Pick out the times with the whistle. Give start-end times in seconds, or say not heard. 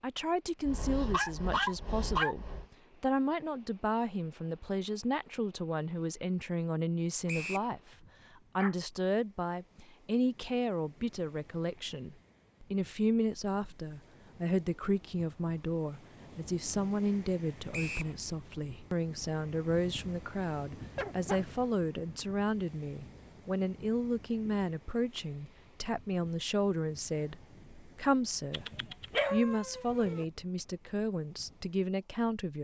7.2-7.7, 17.7-18.1.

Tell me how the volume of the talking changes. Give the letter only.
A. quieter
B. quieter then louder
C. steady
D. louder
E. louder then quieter
C.